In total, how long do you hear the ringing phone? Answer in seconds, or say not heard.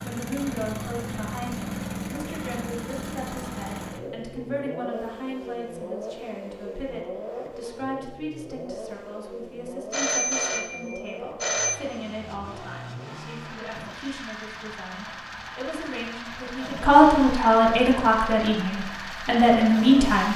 2 s.